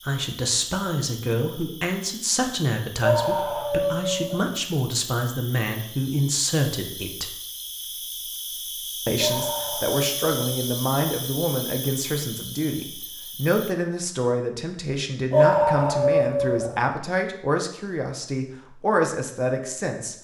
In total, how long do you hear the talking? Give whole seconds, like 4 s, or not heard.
18 s.